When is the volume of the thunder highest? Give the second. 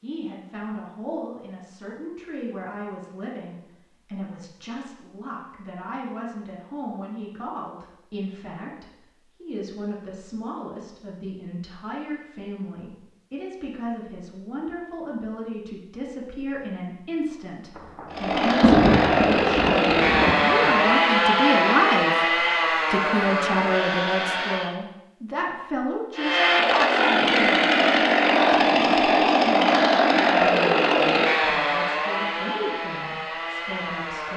19 s.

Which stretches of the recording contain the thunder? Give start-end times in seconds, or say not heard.
17.8-20.9.